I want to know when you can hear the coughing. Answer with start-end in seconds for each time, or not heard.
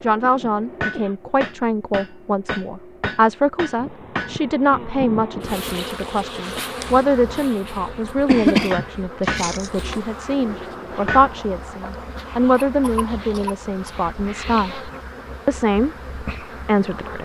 0.2-1.1, 8.2-9.7, 12.6-13.9.